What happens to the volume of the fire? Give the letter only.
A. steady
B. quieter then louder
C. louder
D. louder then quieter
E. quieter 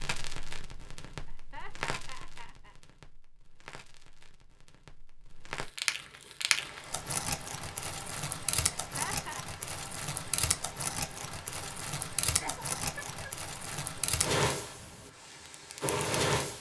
C.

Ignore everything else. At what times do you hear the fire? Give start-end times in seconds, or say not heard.
0.0-16.5.